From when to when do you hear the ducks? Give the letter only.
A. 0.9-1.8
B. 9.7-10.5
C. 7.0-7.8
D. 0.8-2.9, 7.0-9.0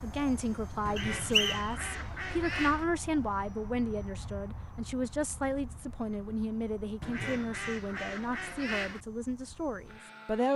D.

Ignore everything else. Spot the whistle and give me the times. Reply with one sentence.
You can hear the whistle from 0.9 to 1.8 s.